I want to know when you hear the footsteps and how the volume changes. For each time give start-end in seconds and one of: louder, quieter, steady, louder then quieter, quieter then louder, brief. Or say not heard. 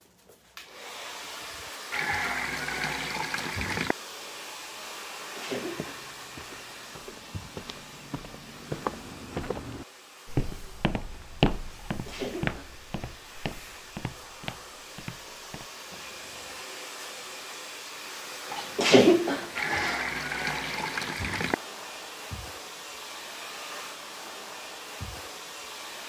5.5-16.6 louder then quieter.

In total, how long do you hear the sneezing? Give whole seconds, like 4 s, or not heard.
4 s.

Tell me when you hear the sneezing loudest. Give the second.
19 s.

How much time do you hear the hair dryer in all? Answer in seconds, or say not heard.
26 s.